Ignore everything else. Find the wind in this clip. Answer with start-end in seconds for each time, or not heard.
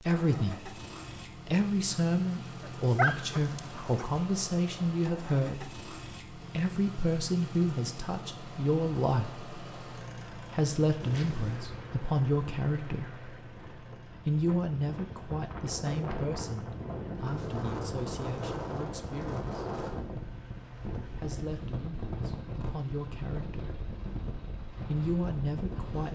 11.0-26.1.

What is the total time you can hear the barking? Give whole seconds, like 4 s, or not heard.
2 s.